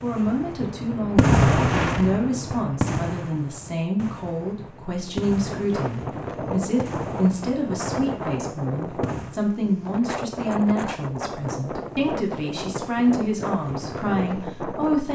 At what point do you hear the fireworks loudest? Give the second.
1 s.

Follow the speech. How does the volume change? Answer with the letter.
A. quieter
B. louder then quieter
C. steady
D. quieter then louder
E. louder
C.